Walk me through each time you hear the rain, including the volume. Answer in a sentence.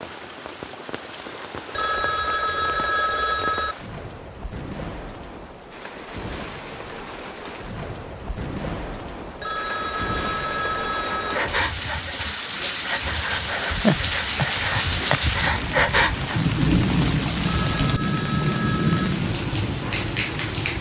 You can hear the rain from 0.0 to 20.7 s, getting louder.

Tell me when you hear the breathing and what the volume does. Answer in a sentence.
You can hear the breathing from 11.2 to 16.5 s, getting louder.